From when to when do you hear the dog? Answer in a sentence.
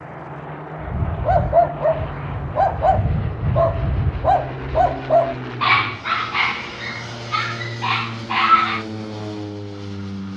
The dog can be heard from 0.8 to 8.8 s.